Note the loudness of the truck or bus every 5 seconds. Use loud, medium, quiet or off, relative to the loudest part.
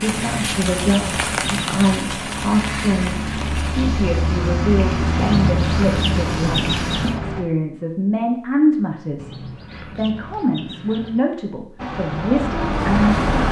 medium, loud, loud.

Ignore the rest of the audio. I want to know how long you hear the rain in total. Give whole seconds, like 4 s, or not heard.
7 s.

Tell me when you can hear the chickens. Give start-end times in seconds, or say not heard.
0.1-1.9, 5.2-7.2, 9.2-11.2.